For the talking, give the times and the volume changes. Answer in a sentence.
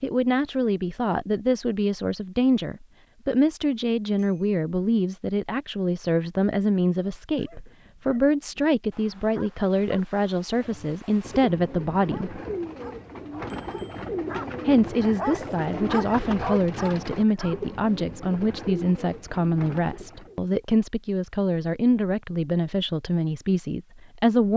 The talking can be heard from 0.0 to 12.4 s, at a steady volume; and from 14.7 to 24.5 s, at a steady volume.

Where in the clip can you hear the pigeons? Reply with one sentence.
The pigeons can be heard from 10.6 to 20.4 s.